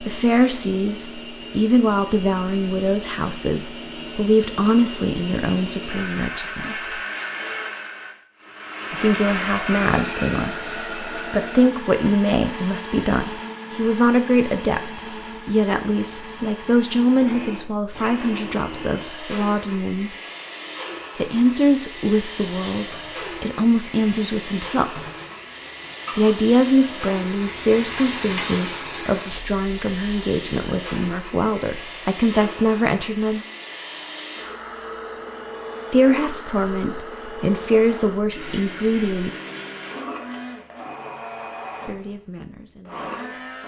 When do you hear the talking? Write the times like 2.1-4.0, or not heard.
0.0-7.0, 8.9-20.1, 21.1-25.1, 26.1-33.4, 35.9-39.3, 41.9-43.4.